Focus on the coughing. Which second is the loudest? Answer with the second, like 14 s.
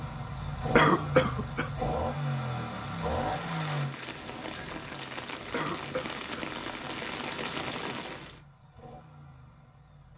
1 s.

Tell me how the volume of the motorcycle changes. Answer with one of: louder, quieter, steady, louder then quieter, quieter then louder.
quieter.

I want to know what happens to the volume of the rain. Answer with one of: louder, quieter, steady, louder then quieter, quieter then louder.
louder.